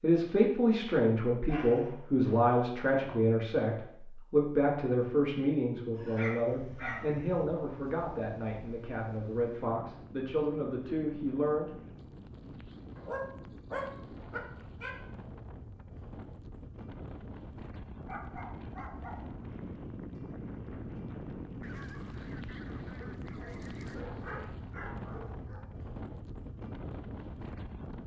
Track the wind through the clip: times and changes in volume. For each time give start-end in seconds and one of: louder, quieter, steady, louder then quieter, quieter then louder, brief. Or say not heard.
6.5-28.0 louder.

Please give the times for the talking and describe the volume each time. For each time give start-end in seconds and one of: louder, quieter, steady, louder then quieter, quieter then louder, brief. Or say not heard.
0.0-11.7 quieter.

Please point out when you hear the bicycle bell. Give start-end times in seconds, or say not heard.
not heard.